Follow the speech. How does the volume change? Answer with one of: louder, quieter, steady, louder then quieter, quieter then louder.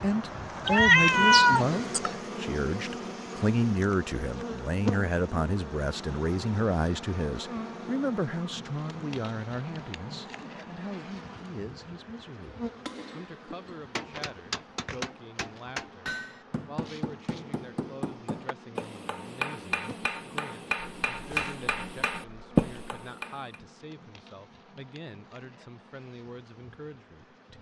quieter.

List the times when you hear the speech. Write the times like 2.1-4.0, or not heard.
0.0-27.5.